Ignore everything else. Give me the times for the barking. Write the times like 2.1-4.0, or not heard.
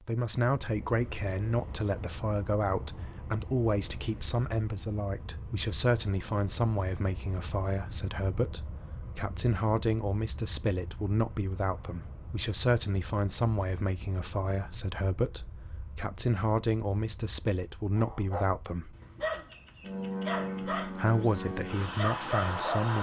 17.9-22.9.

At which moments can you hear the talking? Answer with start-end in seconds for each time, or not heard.
0.1-18.9, 20.6-22.9.